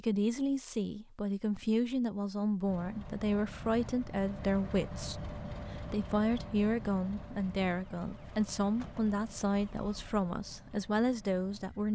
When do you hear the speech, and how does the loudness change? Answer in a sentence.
The speech can be heard from 0.0 to 11.8 s, at a steady volume.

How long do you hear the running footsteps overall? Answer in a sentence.
You can't hear the running footsteps here.